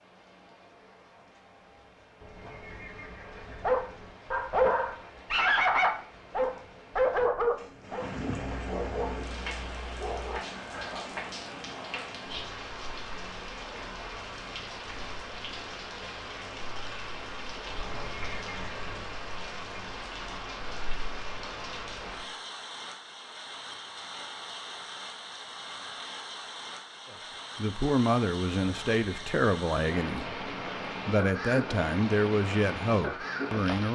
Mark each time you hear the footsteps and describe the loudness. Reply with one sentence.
The footsteps can't be heard in this clip.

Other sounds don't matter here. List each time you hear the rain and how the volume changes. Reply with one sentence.
The rain can be heard from 0.0 to 33.8 s, getting louder.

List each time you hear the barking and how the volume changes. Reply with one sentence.
You can hear the barking from 3.6 to 11.1 s, getting quieter.